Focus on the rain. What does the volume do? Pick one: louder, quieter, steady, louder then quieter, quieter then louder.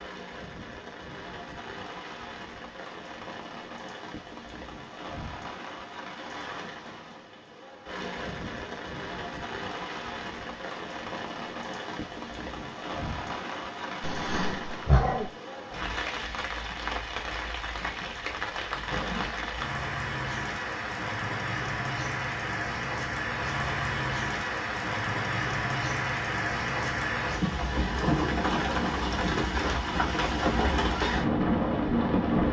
louder.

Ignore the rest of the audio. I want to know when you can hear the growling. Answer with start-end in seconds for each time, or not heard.
14.0-15.3.